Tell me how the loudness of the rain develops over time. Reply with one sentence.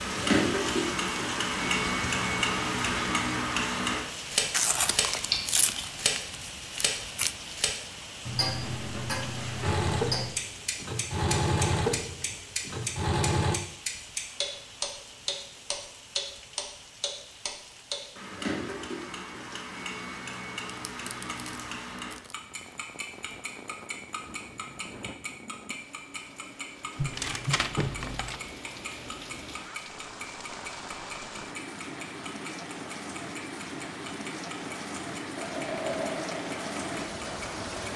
The loudness of the rain goes down, then up.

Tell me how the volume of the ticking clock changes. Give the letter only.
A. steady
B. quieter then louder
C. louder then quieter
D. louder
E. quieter
E.